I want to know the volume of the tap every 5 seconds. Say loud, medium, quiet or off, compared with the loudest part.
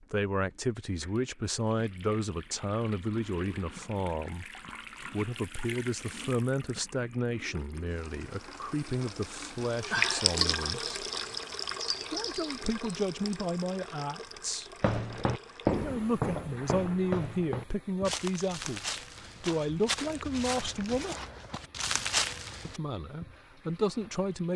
quiet, medium, loud, quiet, quiet.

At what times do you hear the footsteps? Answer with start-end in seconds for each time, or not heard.
14.8-22.8.